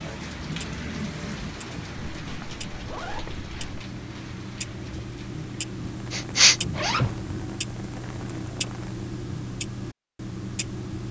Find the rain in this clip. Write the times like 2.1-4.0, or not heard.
0.0-9.1.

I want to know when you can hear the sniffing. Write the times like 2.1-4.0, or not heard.
6.1-7.2.